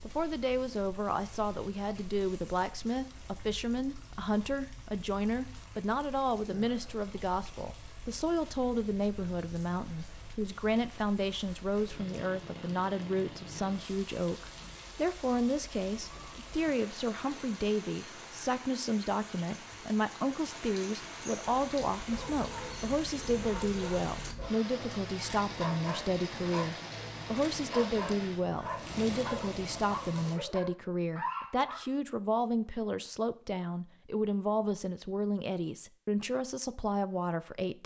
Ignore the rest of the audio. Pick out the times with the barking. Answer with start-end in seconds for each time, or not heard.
21.4-31.8.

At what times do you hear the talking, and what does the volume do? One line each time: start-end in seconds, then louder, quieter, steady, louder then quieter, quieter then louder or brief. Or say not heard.
0.1-37.8 steady.